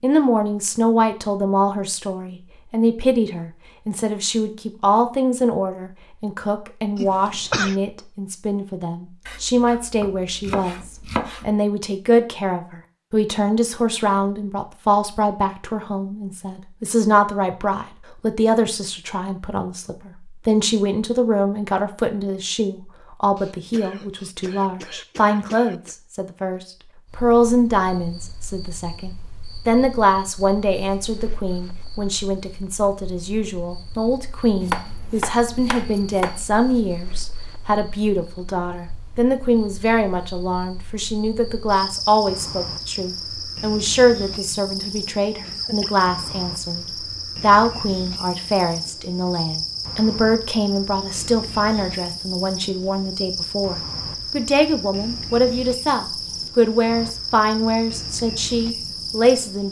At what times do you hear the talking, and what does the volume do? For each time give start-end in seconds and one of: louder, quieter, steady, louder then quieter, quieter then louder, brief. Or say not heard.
0.0-59.6 steady.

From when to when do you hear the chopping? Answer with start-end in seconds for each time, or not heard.
9.2-11.6, 34.6-36.5.